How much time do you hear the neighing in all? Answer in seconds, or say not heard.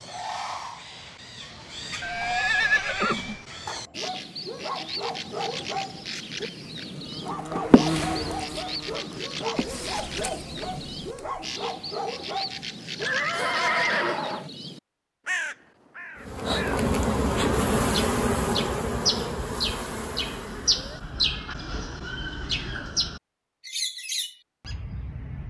4 s.